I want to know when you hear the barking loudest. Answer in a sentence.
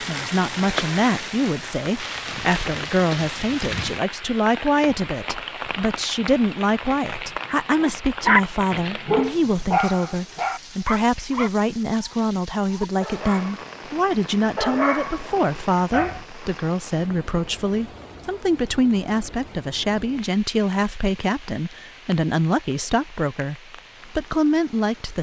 The volume of the barking peaks at 8 seconds.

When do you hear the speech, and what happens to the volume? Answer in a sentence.
The speech can be heard from 0.0 to 25.1 s, at a steady volume.